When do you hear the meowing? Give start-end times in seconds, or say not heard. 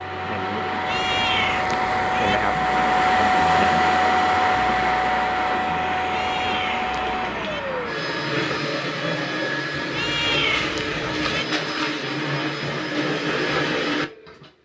0.8-2.4, 6.1-7.6, 9.9-11.4.